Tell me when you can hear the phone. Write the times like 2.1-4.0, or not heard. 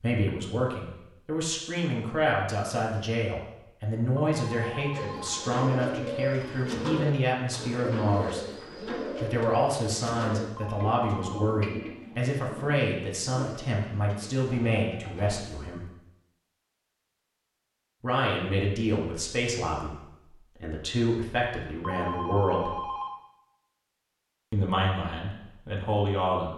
4.2-5.5, 10.6-11.6, 21.8-23.2.